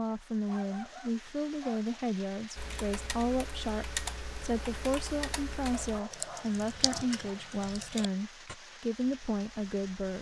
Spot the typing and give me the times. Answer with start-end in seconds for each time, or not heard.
2.5-8.6.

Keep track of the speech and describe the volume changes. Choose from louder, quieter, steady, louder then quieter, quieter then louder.
steady.